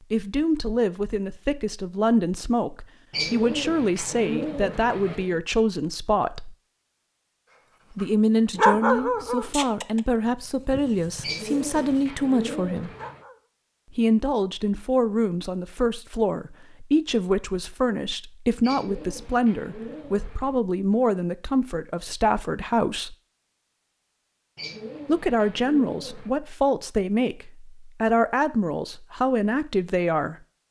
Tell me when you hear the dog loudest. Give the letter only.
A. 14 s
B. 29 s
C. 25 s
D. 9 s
D.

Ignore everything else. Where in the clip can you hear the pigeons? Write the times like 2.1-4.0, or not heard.
3.1-5.4, 11.2-13.2, 18.6-20.6, 24.6-26.4.